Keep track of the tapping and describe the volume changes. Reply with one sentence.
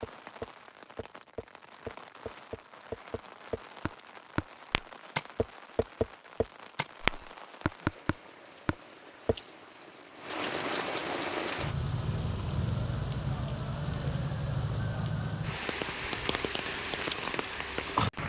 The loudness of the tapping goes up.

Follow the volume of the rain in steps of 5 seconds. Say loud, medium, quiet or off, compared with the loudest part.
quiet, quiet, loud, loud.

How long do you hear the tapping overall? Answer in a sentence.
The tapping can be heard for 9 seconds in total.